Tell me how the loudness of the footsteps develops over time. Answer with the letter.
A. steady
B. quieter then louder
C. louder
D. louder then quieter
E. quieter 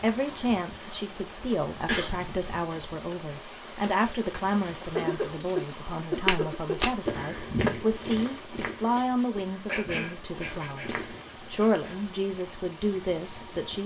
E.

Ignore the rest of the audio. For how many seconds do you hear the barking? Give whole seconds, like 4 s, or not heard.
not heard.